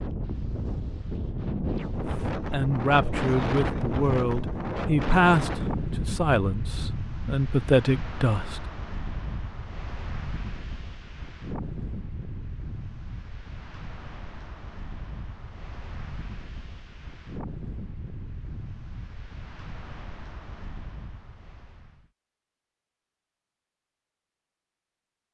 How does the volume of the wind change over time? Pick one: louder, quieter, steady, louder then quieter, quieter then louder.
quieter.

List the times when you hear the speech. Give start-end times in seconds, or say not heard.
2.4-8.6.